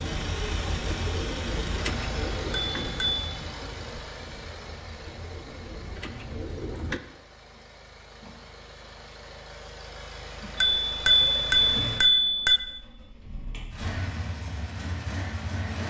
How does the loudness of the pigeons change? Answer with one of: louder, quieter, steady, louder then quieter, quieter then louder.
quieter then louder.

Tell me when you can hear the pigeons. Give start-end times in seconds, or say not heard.
0.0-7.0.